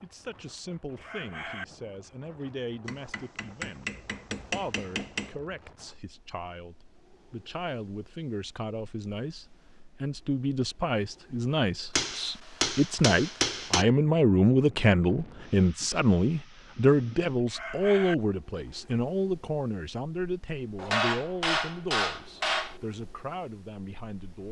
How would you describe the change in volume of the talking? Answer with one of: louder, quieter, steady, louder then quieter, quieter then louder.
louder then quieter.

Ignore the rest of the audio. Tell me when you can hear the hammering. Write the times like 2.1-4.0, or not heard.
2.9-5.3, 11.9-13.8, 20.8-22.8.